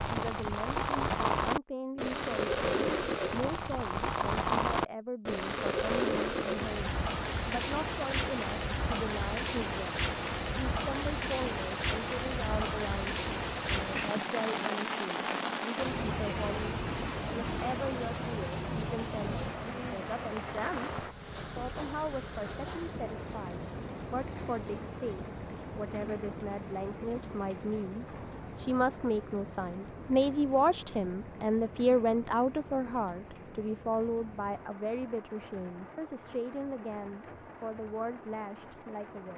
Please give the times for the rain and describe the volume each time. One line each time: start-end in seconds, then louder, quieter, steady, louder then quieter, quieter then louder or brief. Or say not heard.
0.0-39.3 quieter.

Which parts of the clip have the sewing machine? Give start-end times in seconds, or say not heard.
not heard.